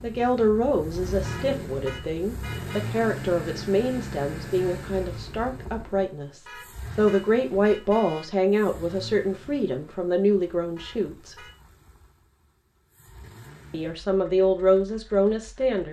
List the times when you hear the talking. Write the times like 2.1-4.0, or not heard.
0.0-11.4, 13.7-15.8.